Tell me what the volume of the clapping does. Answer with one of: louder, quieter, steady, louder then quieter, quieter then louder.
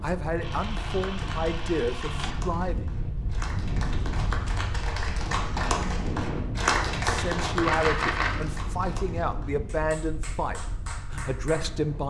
louder then quieter.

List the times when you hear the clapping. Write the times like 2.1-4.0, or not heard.
0.5-11.7.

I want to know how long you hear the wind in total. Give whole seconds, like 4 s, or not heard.
12 s.